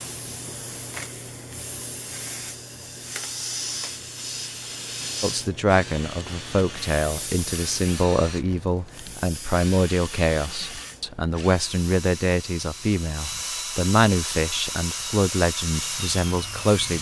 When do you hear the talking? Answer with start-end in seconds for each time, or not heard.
5.2-16.9.